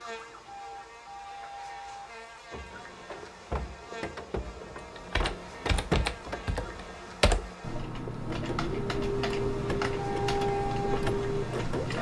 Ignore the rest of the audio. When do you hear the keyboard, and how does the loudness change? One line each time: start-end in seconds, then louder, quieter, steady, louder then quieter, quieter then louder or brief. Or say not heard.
4.8-11.9 steady.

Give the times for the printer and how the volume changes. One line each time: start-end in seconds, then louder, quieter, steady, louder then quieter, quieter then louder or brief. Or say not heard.
0.0-11.9 louder.